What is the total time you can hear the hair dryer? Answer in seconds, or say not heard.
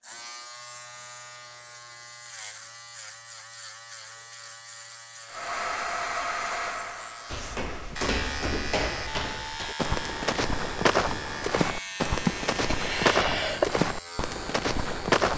3 s.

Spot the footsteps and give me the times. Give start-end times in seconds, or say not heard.
7.3-15.3.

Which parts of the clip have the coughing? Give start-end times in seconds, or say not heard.
12.2-13.7.